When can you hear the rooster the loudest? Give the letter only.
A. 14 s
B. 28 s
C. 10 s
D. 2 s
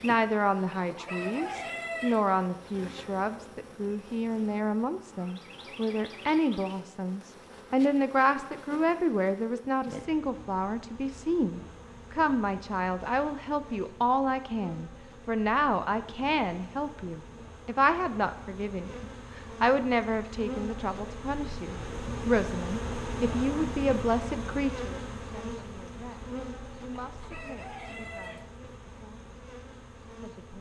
D.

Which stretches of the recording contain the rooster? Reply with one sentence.
You can hear the rooster from 0.7 to 2.2 s and from 26.9 to 28.5 s.